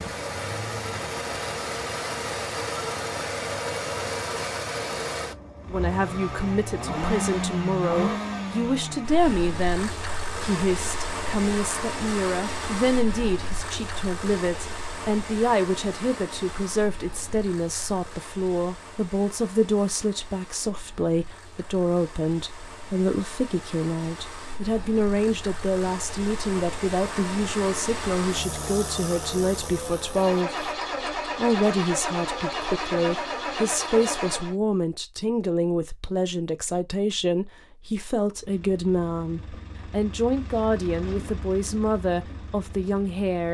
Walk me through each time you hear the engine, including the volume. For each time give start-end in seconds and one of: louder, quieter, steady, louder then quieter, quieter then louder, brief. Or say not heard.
0.0-34.5 quieter then louder
38.4-43.4 louder then quieter.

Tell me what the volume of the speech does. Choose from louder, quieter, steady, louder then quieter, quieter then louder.
steady.